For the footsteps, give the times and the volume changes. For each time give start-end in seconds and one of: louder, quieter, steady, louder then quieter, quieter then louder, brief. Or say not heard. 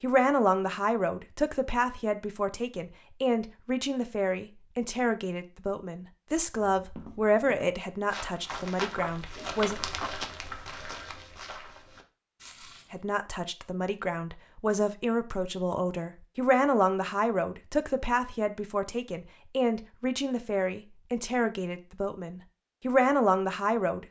6.8-13.0 louder then quieter.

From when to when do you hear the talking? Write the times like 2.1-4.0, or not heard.
0.0-9.8, 12.9-24.0.